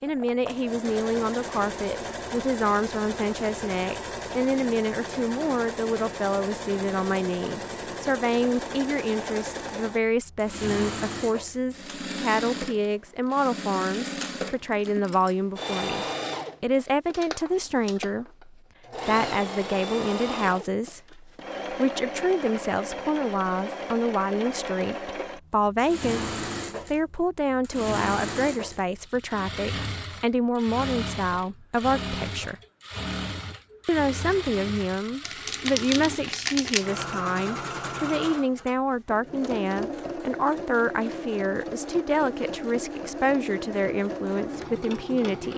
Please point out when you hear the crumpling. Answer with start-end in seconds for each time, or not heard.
35.2-37.1.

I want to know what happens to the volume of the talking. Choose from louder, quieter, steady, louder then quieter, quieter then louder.
steady.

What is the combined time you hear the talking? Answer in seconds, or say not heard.
44 s.